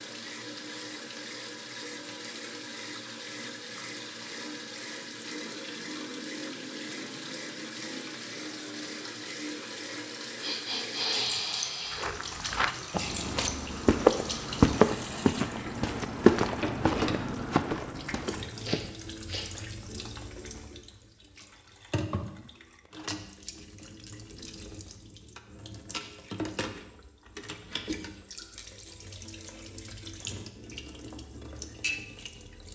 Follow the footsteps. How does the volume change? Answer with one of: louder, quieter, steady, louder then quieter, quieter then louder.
louder then quieter.